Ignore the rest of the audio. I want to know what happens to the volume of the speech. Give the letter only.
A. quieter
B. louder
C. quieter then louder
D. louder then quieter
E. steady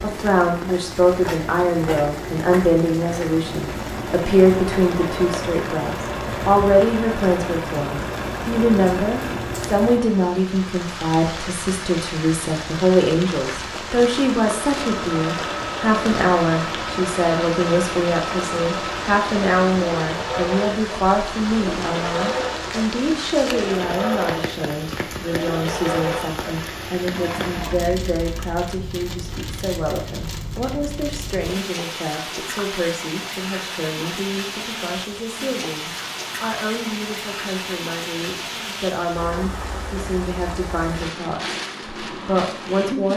A.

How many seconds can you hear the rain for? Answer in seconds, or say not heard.
43 s.